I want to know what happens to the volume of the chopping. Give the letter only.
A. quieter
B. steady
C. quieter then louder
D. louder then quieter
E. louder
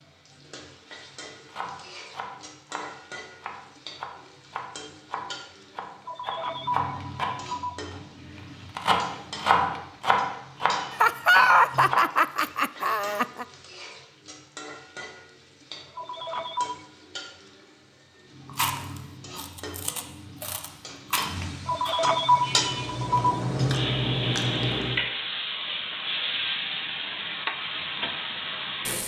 E.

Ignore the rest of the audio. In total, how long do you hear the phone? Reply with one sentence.
You can hear the phone for 4 seconds altogether.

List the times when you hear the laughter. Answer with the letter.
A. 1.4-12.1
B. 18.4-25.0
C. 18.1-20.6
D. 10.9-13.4
D.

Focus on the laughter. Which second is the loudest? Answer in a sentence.
The volume of the laughter peaks at 11 seconds.